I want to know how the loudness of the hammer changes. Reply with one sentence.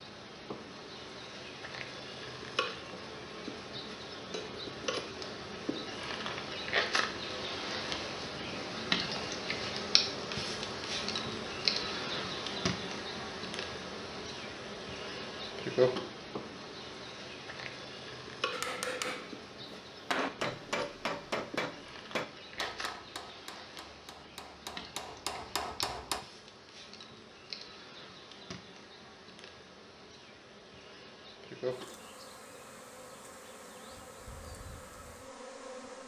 The volume of the hammer goes down, then up.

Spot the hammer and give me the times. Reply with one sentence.
The hammer can be heard from 18.5 to 26.2 s.